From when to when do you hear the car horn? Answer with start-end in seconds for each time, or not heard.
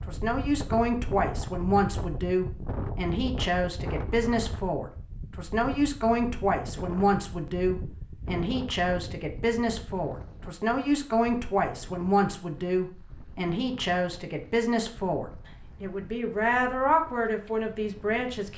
not heard.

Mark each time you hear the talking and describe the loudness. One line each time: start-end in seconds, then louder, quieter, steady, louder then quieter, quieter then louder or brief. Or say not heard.
0.1-18.5 steady.